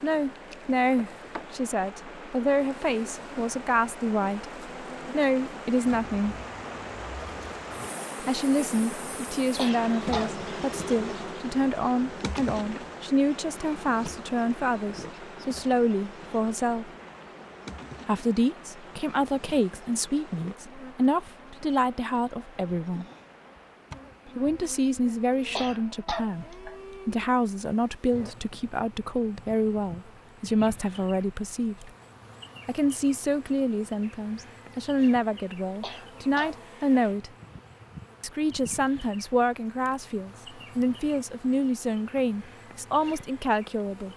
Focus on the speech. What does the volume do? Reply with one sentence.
The volume of the speech stays about the same.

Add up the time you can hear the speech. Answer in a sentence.
The speech can be heard for 38 seconds in total.